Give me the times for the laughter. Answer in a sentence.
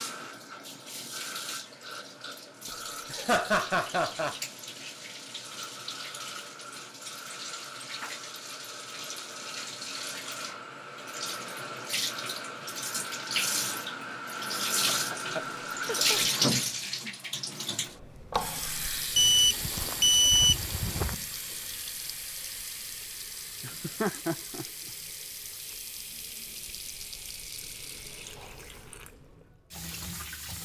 The laughter can be heard from 2.6 to 4.3 s, from 14.9 to 16.6 s and from 23.6 to 24.6 s.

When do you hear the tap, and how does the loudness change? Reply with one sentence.
The tap can be heard from 0.0 to 30.6 s, getting louder then quieter.